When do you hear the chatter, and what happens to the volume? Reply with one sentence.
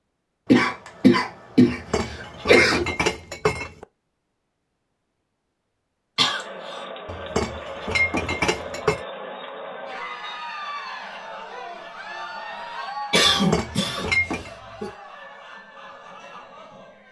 You can hear the chatter from 6.2 to 17.0 s, getting quieter.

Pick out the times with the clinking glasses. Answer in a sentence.
You can hear the clinking glasses from 1.6 to 3.9 s, from 7.0 to 9.0 s and from 13.3 to 14.5 s.